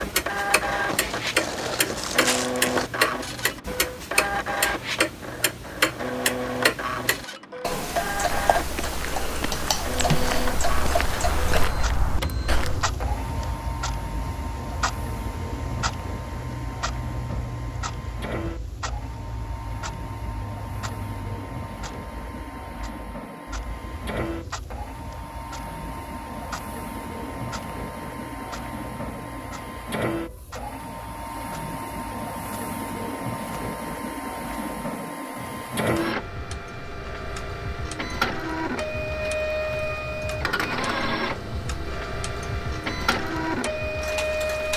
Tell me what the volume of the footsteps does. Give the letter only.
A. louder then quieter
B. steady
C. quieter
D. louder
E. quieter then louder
D.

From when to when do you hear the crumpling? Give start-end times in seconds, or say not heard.
0.9-2.9.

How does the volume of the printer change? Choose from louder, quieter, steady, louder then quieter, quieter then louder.
quieter then louder.